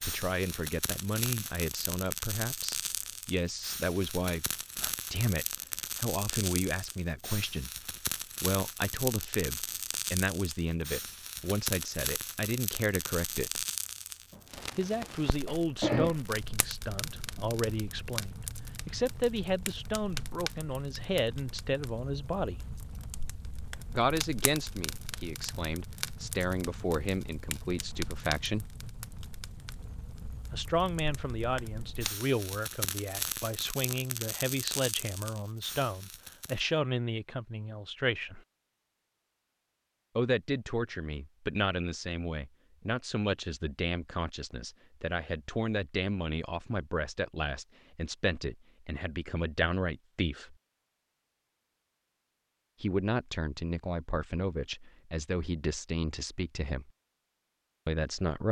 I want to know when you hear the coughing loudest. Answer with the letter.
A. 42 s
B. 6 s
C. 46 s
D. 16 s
D.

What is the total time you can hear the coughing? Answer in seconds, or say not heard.
2 s.